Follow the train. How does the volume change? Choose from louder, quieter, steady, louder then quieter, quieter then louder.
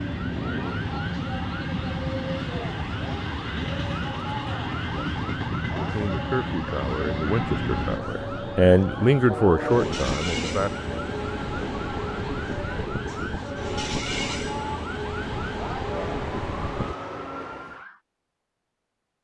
steady.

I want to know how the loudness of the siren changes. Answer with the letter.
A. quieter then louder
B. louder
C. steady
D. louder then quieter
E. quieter
C.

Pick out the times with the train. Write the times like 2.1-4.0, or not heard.
0.0-16.9.